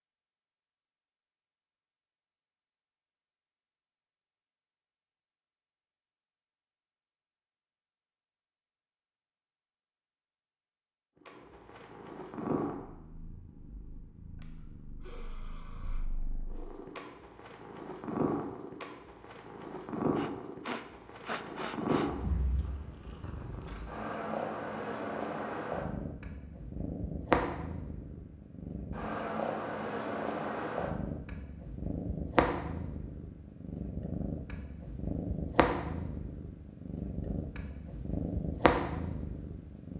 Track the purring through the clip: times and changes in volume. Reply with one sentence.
You can hear the purring from 11.2 to 39.9 s, getting louder.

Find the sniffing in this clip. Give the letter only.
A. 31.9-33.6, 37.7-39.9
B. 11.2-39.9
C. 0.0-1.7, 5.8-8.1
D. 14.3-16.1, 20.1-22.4
D.